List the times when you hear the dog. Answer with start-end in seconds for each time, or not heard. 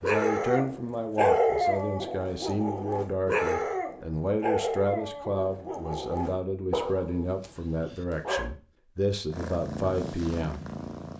0.0-8.5.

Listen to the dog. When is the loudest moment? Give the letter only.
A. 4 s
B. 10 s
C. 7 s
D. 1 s
D.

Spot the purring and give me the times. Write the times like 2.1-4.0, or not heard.
9.3-11.1.